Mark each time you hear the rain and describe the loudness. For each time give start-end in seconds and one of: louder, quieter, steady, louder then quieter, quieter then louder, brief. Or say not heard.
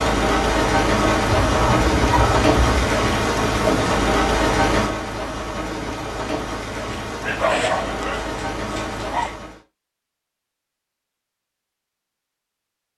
0.0-9.6 quieter.